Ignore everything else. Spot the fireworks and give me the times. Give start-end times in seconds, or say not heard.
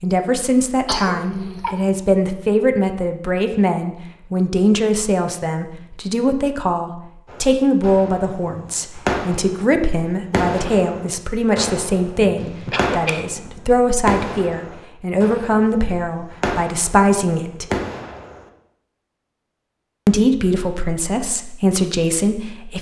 7.2-18.4.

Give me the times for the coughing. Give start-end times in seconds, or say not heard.
0.8-2.0, 12.3-13.2.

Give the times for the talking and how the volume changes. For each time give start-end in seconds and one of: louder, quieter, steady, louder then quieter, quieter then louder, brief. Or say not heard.
0.0-17.6 steady
20.1-22.7 brief.